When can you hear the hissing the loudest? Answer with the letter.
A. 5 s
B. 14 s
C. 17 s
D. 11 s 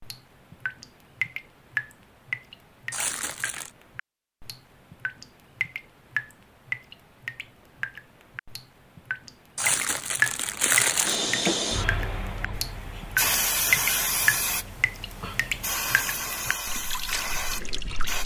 B.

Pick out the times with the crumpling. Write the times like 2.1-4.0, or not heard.
2.9-3.7, 9.6-11.2.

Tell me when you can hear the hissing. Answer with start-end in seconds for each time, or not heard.
11.1-18.2.